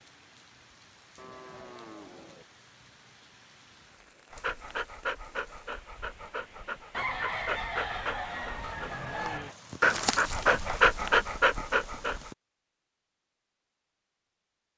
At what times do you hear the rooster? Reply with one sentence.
The rooster can be heard from 6.9 to 9.6 s.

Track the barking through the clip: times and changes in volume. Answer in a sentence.
You can hear the barking from 4.3 to 12.3 s, getting louder.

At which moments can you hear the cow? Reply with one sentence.
You can hear the cow from 1.1 to 2.5 s.